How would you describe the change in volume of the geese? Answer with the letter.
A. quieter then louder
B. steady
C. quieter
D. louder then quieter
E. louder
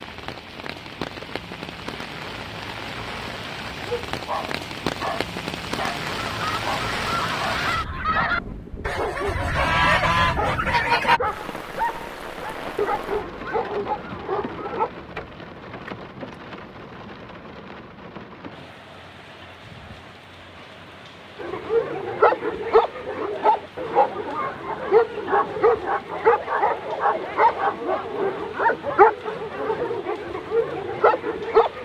E.